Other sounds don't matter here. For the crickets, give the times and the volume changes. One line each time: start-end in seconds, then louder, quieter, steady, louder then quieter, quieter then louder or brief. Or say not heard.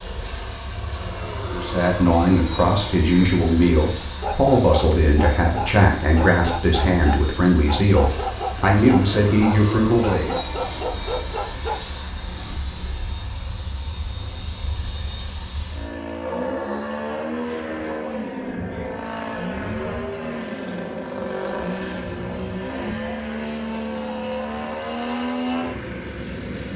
not heard.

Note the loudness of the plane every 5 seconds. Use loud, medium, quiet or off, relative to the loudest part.
medium, medium, medium, loud, loud, loud.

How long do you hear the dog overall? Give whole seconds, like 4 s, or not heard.
8 s.